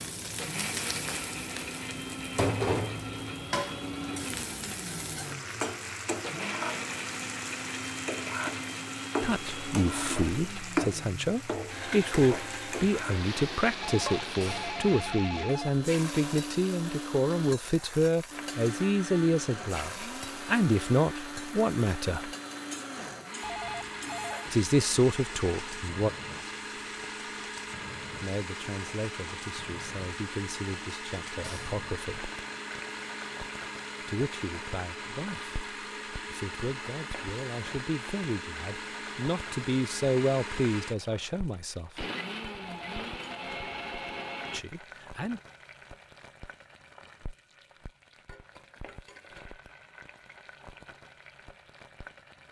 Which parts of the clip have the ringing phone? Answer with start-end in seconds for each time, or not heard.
13.8-15.8, 23.4-24.6, 42.6-44.5.